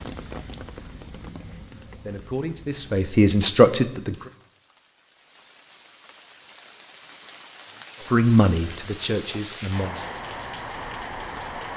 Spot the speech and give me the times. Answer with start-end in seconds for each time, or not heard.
1.5-4.2, 8.1-10.1.